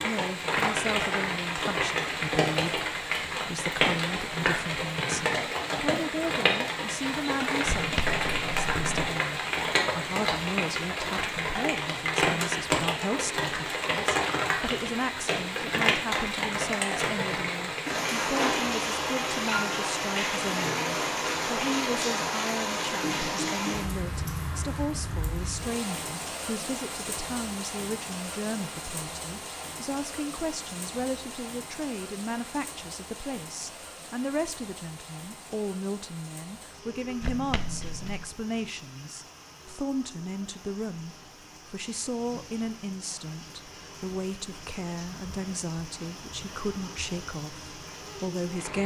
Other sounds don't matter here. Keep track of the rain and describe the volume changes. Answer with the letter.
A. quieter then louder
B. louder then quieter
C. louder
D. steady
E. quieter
E.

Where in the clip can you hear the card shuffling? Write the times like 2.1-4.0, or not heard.
7.7-8.9, 37.2-38.3.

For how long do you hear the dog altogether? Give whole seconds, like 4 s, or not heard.
not heard.